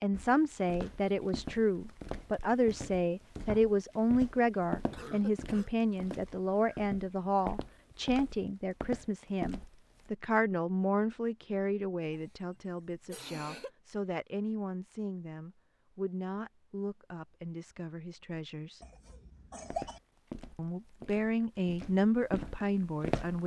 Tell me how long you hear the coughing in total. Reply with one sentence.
The coughing can be heard for 4 seconds in total.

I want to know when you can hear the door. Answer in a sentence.
The door can't be heard in this clip.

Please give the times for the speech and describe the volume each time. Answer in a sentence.
The speech can be heard from 0.0 to 18.8 s, getting quieter; and briefly from 20.6 to 23.4 s.